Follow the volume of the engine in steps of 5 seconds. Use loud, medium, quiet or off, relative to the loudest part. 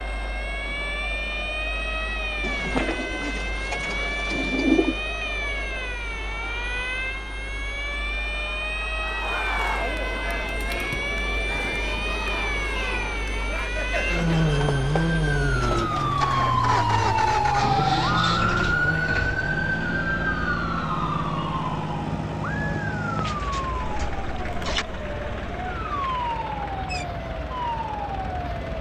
quiet, quiet, medium, loud, loud, medium.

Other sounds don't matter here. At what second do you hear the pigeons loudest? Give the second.
5 s.